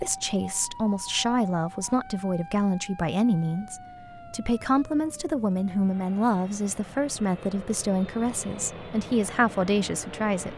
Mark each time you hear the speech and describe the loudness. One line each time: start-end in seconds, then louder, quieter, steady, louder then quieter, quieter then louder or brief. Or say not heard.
0.0-10.5 steady.